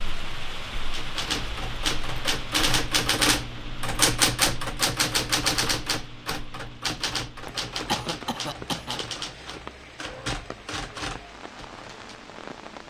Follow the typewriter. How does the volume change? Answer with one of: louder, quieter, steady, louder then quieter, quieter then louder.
quieter.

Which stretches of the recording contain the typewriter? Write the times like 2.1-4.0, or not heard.
0.9-12.2.